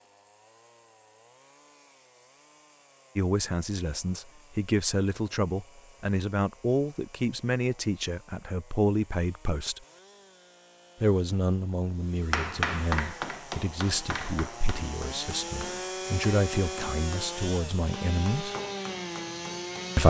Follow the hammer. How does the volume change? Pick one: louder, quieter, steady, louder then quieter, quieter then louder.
quieter.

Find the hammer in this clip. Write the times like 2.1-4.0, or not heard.
12.3-20.0.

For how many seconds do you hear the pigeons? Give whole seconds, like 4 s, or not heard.
not heard.